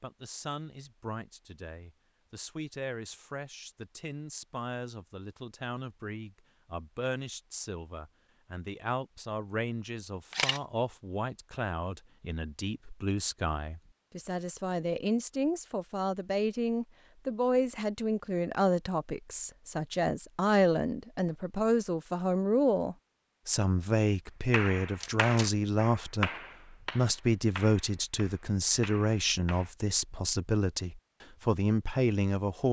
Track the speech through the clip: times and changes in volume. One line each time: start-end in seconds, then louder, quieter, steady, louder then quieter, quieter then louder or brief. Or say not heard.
0.0-32.6 louder.